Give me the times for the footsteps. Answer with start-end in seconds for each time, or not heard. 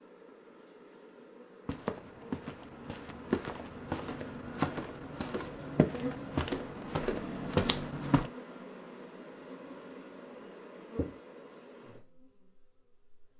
1.6-8.3.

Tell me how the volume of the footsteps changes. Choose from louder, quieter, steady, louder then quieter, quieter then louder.
louder.